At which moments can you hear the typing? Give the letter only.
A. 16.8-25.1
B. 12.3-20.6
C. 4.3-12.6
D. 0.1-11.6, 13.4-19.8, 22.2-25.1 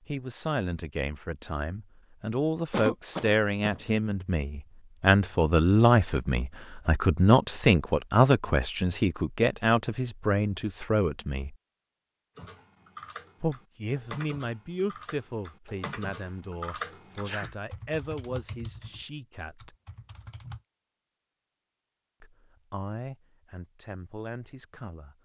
B.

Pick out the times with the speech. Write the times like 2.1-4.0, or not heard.
0.1-11.6, 13.4-19.8, 22.2-25.1.